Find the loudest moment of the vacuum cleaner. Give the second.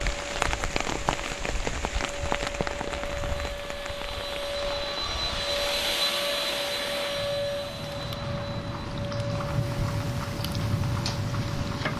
6 s.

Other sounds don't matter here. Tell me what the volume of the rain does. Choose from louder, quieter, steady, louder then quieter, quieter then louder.
quieter then louder.